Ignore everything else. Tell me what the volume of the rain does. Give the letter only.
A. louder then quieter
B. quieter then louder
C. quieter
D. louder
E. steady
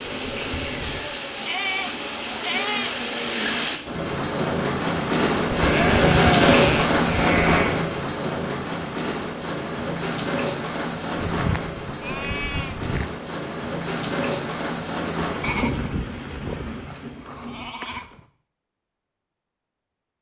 A.